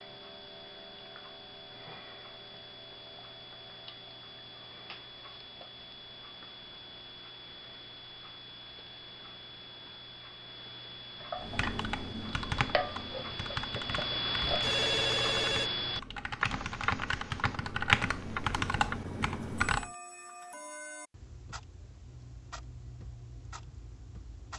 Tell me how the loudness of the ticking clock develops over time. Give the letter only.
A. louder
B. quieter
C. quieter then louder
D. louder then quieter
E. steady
D.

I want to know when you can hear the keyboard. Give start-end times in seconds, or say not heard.
11.3-19.9.